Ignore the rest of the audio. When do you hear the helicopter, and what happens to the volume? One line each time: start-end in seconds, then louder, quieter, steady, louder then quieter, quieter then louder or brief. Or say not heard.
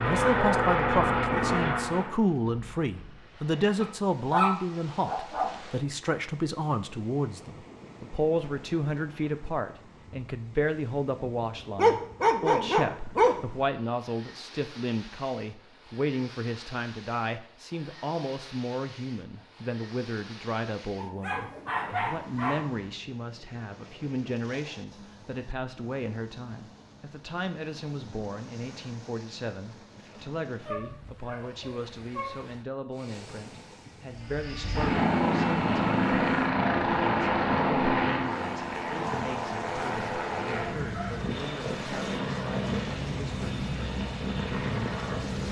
0.0-2.1 brief
34.1-45.4 quieter.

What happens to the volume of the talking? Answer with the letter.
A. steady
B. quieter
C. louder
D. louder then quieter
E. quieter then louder
B.